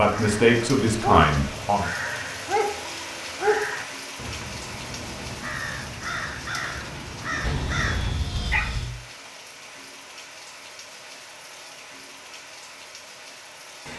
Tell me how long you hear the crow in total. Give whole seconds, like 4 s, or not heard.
8 s.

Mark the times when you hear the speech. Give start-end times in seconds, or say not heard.
0.0-1.9.